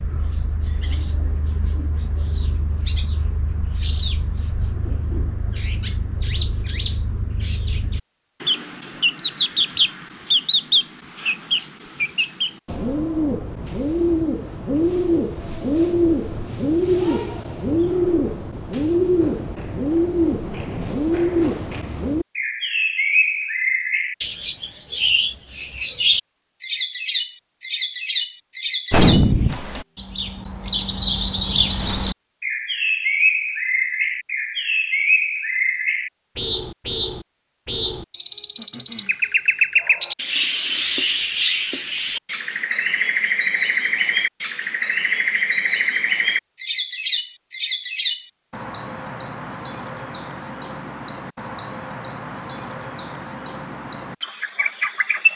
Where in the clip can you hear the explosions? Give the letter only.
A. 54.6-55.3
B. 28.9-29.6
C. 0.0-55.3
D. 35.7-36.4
B.